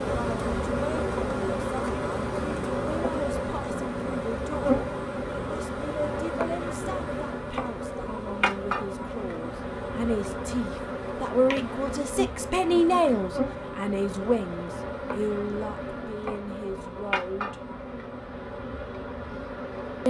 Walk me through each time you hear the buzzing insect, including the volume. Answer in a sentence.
You can hear the buzzing insect from 0.0 to 20.0 s, getting quieter.